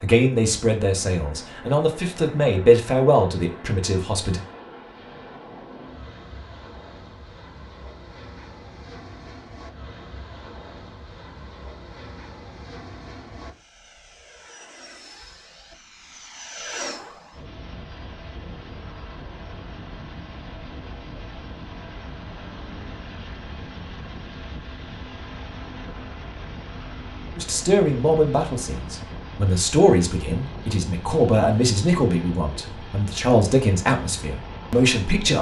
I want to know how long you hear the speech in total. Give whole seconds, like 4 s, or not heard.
12 s.